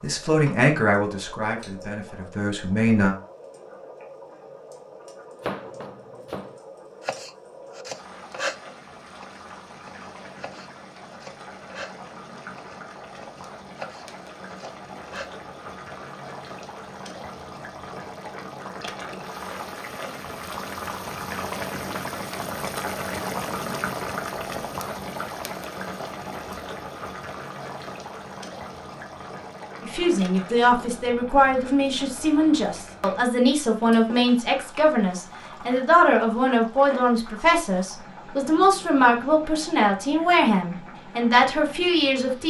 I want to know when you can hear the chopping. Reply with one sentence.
The chopping can be heard from 5.4 to 8.6 s, from 9.2 to 11.9 s and from 12.6 to 15.3 s.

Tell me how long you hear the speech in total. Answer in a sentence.
The speech can be heard for 16 seconds in total.